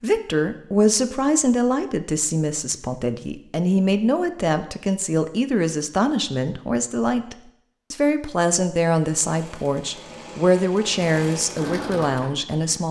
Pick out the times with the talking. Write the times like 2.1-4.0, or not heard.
0.0-12.8.